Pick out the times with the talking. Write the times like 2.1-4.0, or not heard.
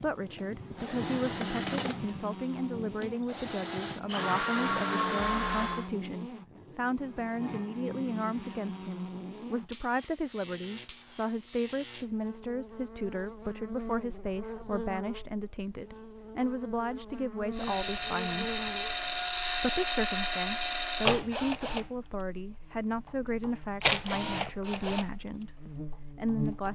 0.0-18.6, 19.6-26.6.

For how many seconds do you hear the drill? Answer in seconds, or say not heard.
15 s.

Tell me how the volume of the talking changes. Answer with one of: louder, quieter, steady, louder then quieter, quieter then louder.
steady.